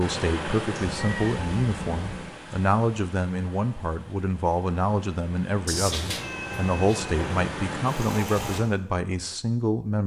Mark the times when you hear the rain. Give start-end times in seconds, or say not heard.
0.0-8.6.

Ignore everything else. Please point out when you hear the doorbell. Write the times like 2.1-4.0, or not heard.
not heard.